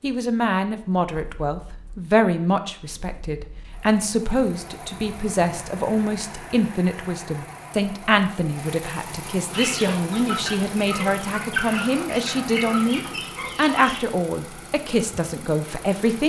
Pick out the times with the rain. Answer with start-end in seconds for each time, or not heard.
not heard.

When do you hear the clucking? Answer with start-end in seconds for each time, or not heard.
9.5-14.0.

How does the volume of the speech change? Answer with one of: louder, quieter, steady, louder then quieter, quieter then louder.
steady.